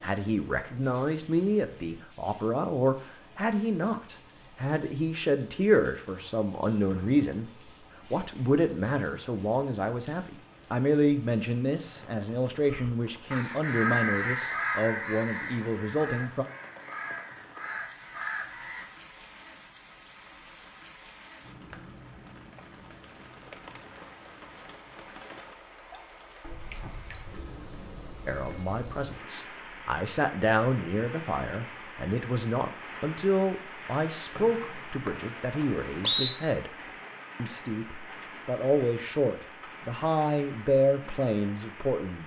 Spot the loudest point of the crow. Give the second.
14 s.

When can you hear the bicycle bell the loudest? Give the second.
27 s.